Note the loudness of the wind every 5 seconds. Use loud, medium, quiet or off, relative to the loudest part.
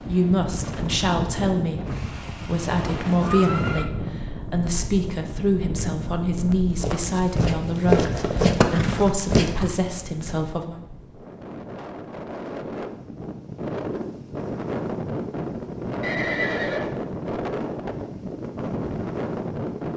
loud, medium, loud, loud.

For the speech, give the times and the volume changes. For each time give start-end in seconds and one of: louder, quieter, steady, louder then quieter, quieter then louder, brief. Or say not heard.
0.0-10.8 steady.